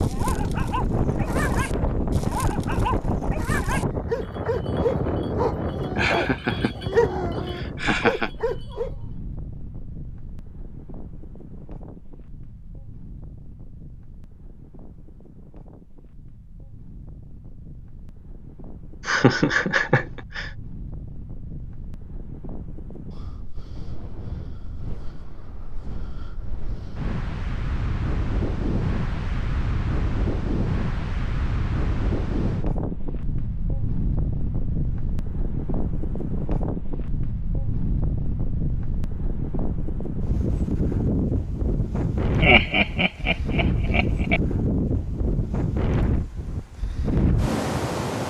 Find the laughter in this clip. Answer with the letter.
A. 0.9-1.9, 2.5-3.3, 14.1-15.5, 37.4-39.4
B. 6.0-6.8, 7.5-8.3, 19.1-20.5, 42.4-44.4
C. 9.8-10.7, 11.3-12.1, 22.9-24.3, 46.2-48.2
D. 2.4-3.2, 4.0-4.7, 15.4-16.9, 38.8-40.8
B.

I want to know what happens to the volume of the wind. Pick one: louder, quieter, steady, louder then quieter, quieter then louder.
quieter then louder.